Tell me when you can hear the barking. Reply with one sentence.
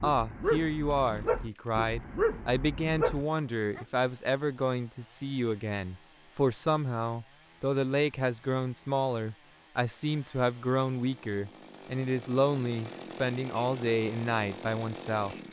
You can hear the barking from 0.0 to 3.9 s.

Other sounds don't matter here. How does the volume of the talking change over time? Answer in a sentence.
The loudness of the talking stays about the same.